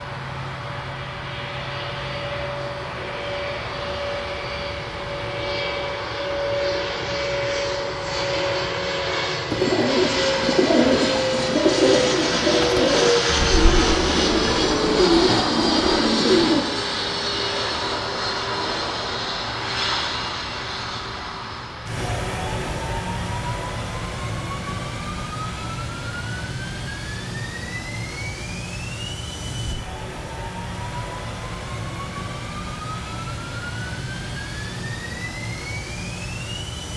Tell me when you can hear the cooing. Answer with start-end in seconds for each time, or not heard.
9.5-16.6.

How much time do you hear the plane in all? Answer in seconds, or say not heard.
37 s.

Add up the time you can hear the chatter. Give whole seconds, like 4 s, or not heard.
not heard.